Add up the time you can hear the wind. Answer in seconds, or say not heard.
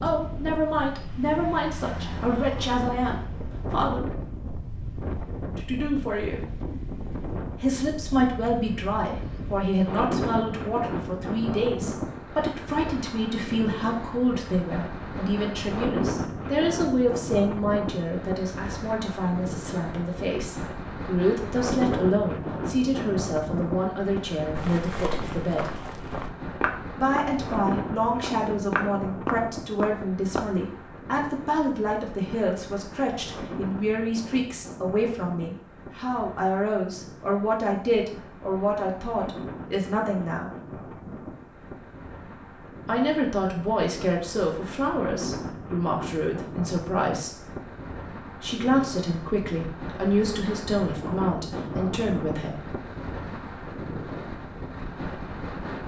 56 s.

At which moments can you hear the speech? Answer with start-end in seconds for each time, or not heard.
0.0-4.0, 5.5-6.5, 7.6-25.7, 26.9-40.5, 42.9-47.3, 48.4-52.6.